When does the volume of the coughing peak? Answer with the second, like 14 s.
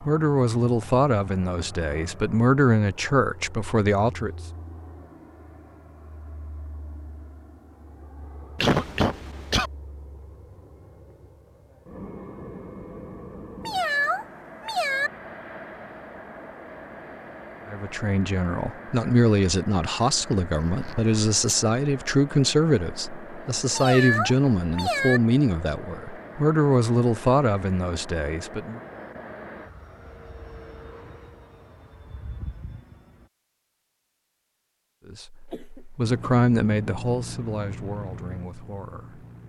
9 s.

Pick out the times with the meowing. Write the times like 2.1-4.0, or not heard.
13.7-15.1, 23.8-25.2.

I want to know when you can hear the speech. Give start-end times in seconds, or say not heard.
0.0-4.3, 17.6-28.8, 35.0-39.2.